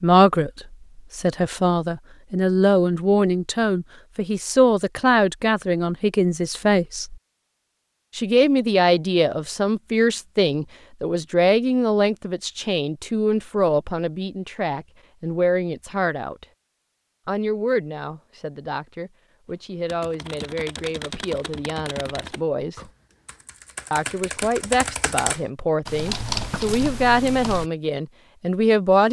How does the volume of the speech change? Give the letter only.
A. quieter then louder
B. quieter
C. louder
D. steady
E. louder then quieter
A.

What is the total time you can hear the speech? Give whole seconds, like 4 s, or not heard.
26 s.